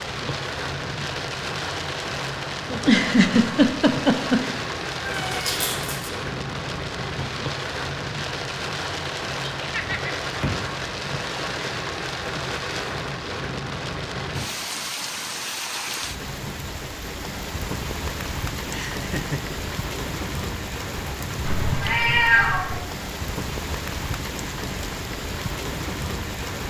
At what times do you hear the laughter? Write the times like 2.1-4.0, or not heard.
2.6-4.5, 9.4-10.2, 18.7-19.6.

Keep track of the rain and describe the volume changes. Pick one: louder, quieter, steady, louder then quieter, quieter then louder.
steady.